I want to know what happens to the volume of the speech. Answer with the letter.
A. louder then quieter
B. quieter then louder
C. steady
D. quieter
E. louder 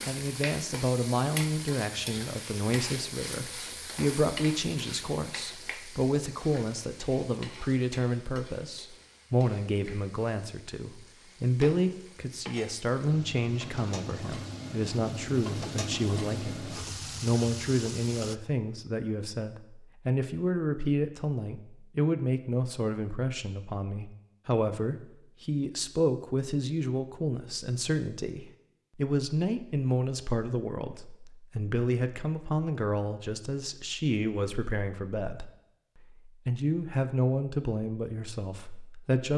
C.